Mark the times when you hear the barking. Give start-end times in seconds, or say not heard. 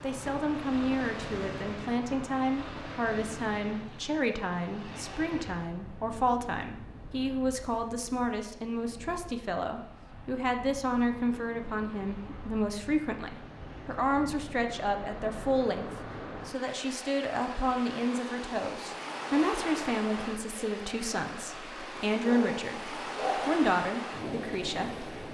21.6-23.6.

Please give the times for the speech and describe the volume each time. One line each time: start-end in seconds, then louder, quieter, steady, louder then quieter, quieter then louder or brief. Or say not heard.
0.0-25.1 steady.